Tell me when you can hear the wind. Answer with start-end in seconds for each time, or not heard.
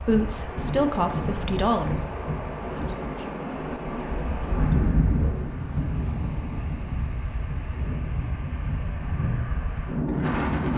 0.0-10.7.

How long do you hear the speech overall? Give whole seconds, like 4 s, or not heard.
5 s.